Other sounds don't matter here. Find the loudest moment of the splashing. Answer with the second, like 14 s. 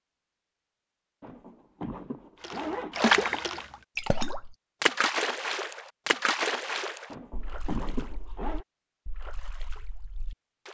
3 s.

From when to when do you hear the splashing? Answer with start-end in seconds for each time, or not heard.
2.4-10.6.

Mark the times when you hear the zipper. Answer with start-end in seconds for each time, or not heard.
1.2-3.1, 7.1-8.7.